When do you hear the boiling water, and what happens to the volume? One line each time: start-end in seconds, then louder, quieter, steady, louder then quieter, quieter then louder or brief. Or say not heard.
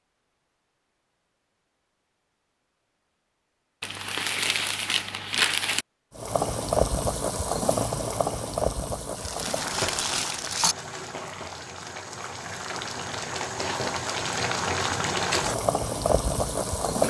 6.2-17.0 quieter then louder.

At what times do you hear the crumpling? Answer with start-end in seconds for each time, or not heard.
3.8-5.8, 9.2-10.8.